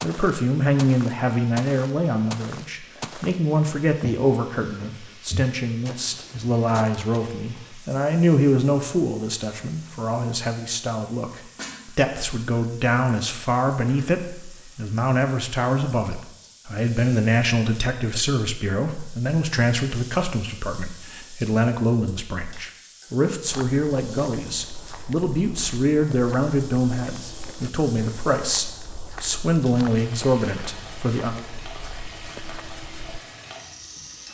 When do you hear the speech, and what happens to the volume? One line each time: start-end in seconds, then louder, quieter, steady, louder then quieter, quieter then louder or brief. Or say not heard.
0.0-31.4 steady.